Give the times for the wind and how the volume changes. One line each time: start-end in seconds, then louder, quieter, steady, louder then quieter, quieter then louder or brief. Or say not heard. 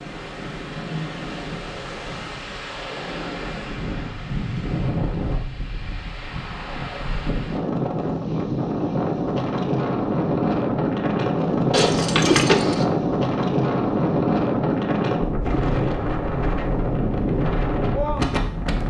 0.0-18.8 louder.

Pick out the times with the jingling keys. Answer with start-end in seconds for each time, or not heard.
11.7-12.8.